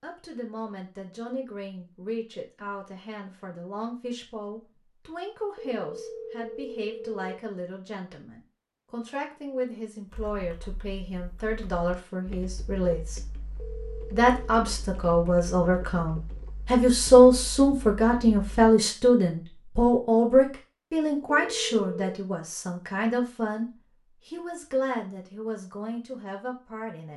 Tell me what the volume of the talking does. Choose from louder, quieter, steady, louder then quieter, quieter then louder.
louder then quieter.